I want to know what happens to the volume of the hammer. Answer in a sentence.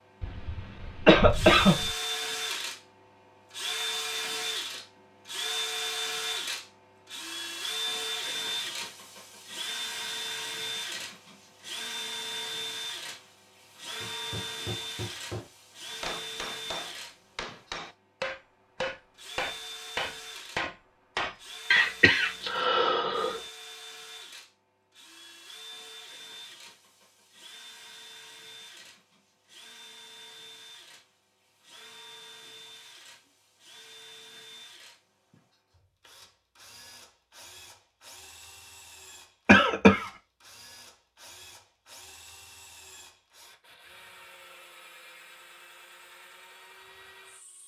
The volume of the hammer goes up.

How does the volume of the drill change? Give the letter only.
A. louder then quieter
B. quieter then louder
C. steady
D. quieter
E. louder
D.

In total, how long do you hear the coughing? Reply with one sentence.
The coughing can be heard for 4 seconds in total.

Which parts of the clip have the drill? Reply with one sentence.
The drill can be heard from 0.0 to 47.6 s.